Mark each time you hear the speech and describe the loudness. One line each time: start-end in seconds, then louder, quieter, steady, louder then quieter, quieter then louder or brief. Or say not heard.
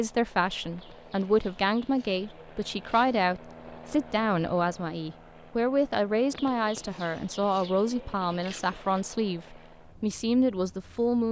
0.0-11.2 steady.